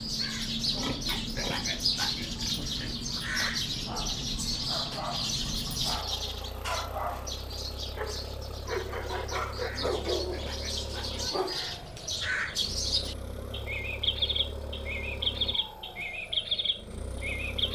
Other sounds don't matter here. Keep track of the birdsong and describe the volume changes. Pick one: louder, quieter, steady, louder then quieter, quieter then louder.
quieter then louder.